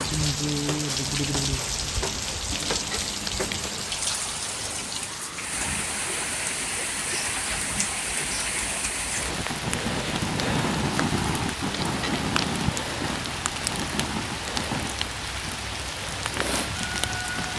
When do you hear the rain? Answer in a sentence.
The rain can be heard from 0.0 to 17.5 s.